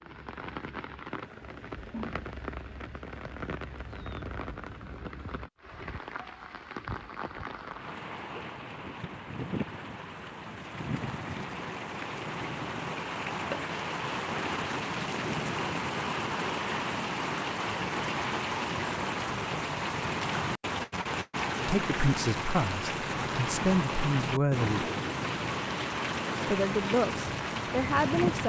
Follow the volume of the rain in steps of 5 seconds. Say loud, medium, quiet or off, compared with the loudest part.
medium, medium, loud, loud, loud, loud.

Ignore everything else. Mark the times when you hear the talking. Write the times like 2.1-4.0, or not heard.
21.6-24.9, 26.4-28.4.